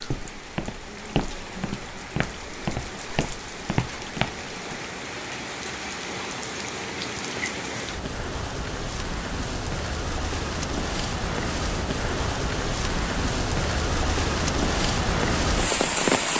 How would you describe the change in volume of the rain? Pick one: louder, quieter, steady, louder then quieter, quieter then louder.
louder.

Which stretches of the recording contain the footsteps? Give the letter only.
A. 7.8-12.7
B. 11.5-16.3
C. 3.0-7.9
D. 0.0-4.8
D.